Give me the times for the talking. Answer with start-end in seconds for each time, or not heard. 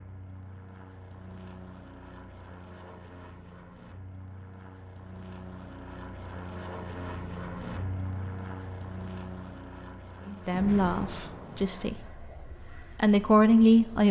10.2-12.0, 13.0-14.0.